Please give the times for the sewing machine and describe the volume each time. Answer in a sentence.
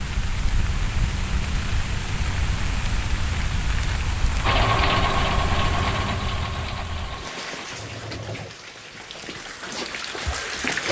The sewing machine can be heard from 4.4 to 10.8 s, getting quieter.